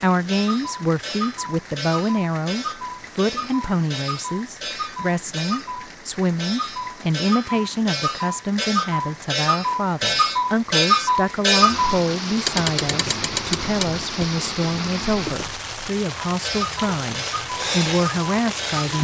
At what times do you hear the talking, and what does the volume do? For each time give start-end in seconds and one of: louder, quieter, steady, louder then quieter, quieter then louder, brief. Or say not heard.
0.0-18.9 steady.